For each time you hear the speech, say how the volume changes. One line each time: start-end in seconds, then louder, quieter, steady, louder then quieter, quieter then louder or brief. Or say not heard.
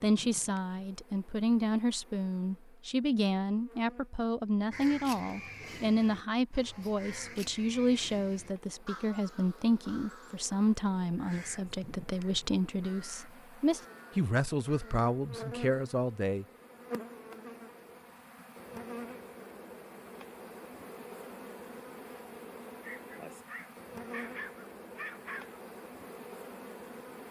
0.0-16.4 steady.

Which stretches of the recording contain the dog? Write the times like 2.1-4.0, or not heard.
22.8-25.6.